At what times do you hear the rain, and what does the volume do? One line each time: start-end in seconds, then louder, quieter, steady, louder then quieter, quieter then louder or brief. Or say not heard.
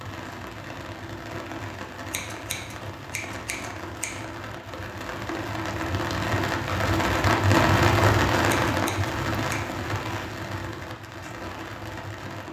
0.0-12.4 louder then quieter.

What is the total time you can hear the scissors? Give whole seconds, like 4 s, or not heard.
3 s.